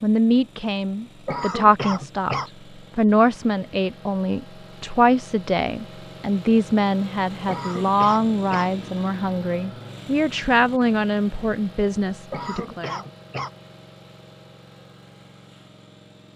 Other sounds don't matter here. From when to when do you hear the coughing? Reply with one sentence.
The coughing can be heard from 1.2 to 2.5 s, from 7.5 to 8.7 s and from 12.3 to 13.5 s.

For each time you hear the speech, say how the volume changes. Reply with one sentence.
You can hear the speech from 0.0 to 13.0 s, at a steady volume.